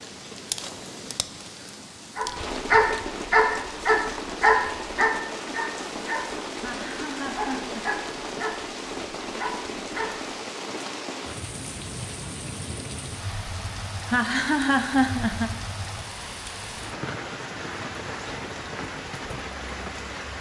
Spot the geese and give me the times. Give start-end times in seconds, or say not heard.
not heard.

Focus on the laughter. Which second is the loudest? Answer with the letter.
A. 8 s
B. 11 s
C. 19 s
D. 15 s
D.